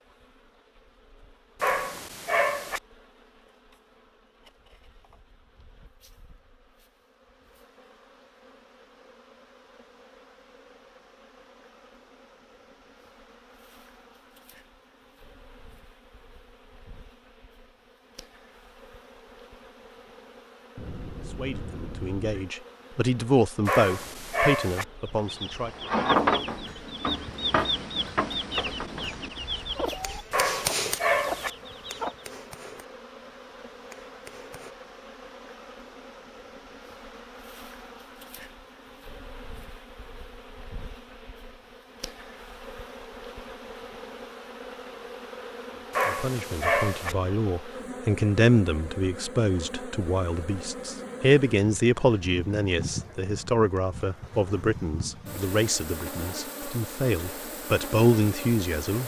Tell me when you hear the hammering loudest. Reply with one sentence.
The loudest moment of the hammering is at 31 seconds.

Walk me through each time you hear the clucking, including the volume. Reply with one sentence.
The clucking can be heard from 24.9 to 32.1 s, getting quieter.